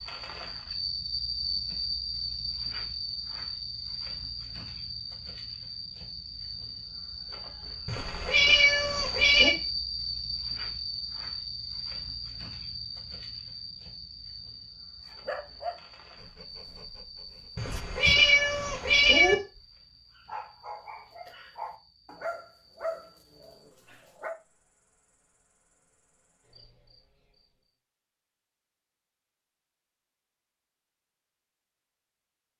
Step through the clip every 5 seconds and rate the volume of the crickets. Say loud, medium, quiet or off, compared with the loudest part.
loud, loud, loud, quiet, quiet, quiet, off.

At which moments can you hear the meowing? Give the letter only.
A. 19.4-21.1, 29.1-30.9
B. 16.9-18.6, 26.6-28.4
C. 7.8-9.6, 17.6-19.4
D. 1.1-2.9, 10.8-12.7
C.